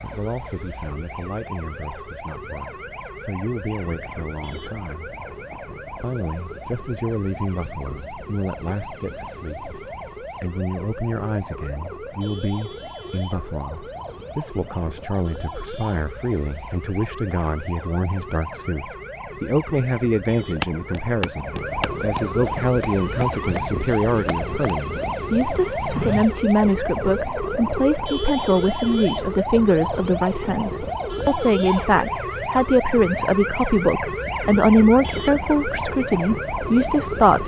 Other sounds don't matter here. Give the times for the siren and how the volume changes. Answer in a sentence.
The siren can be heard from 0.0 to 37.4 s, getting louder.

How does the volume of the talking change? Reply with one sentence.
The volume of the talking goes up.